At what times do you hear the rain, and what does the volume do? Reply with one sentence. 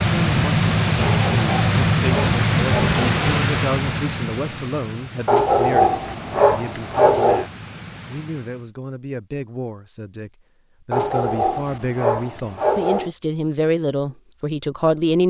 The rain can be heard from 0.0 to 8.7 s, getting quieter.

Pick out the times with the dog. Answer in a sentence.
The dog can be heard from 1.0 to 3.2 s, from 5.2 to 7.5 s and from 10.9 to 13.1 s.